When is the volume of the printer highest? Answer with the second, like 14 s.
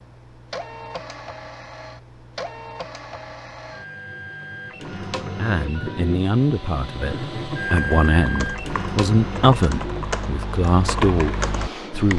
8 s.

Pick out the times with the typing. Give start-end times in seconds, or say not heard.
7.7-12.1.